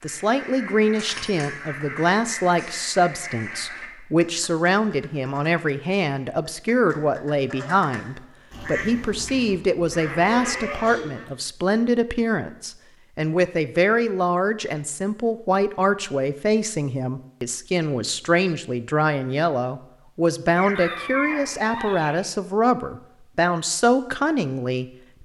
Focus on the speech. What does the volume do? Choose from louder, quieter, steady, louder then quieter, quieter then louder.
steady.